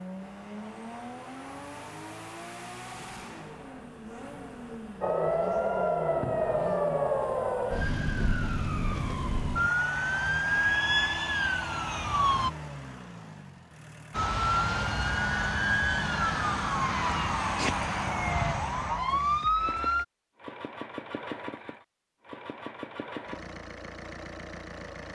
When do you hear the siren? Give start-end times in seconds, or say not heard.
5.0-12.5, 14.1-20.1.